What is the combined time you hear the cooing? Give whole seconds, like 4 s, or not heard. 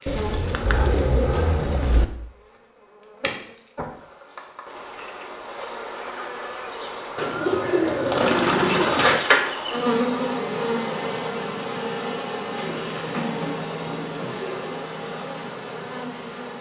6 s.